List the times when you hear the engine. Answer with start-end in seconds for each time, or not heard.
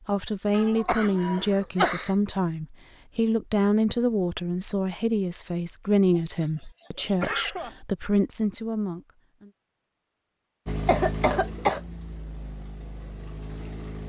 10.7-14.0.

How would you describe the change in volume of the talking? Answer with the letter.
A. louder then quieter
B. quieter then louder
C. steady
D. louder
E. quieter
C.